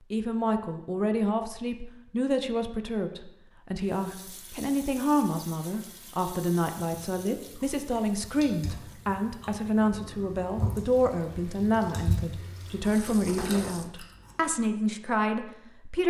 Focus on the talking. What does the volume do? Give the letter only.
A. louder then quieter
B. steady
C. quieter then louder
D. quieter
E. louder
B.